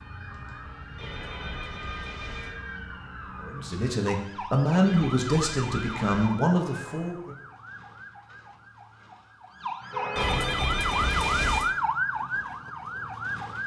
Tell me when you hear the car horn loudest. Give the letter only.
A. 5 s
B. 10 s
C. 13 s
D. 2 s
B.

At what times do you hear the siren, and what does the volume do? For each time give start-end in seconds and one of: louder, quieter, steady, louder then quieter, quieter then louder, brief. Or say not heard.
0.0-13.6 louder.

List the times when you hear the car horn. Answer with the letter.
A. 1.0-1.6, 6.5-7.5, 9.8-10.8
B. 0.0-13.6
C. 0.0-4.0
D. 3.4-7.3
A.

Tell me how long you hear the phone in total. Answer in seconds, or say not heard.
5 s.